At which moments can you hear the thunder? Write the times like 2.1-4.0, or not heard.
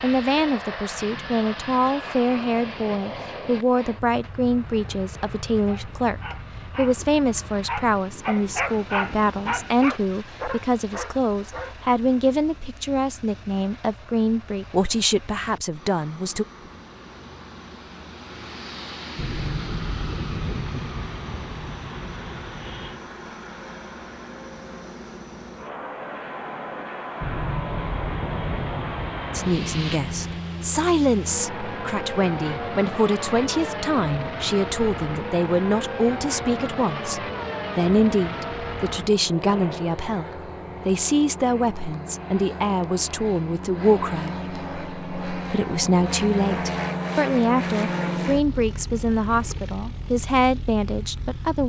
19.1-23.0, 27.2-30.4.